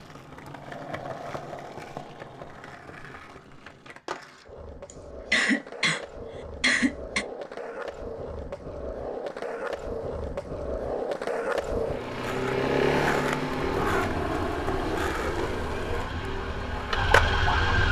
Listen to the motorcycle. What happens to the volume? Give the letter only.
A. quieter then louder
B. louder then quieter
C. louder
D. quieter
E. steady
D.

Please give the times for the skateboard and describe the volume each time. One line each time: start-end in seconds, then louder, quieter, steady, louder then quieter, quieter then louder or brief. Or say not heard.
0.0-17.4 louder.